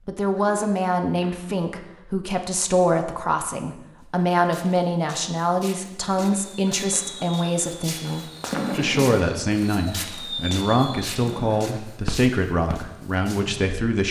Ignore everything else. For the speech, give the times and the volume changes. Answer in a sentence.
The speech can be heard from 0.1 to 14.0 s, at a steady volume.